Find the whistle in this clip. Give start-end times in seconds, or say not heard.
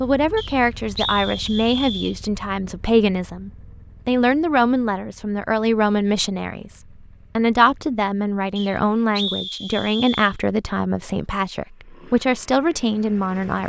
0.3-2.1, 8.6-10.3.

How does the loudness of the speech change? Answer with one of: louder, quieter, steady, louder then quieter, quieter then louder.
steady.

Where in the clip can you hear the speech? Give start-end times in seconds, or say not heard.
0.0-13.6.